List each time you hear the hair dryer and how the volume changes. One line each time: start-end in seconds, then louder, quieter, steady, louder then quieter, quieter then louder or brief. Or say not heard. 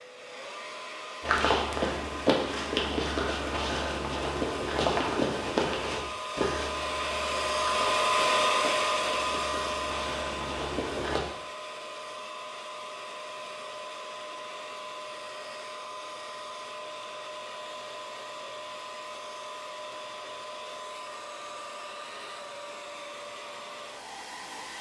0.0-24.7 louder then quieter.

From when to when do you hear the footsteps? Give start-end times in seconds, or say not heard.
1.2-11.2.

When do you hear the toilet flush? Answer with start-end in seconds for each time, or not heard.
not heard.